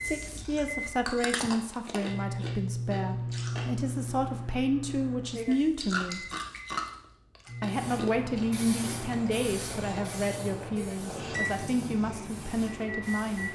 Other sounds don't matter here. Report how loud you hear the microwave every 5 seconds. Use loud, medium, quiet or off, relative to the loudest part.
loud, medium, loud.